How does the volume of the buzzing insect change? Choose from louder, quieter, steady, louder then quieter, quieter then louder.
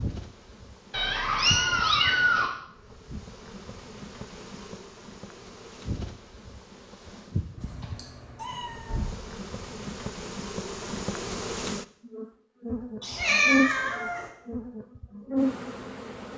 louder.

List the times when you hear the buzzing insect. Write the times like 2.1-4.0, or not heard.
0.0-16.3.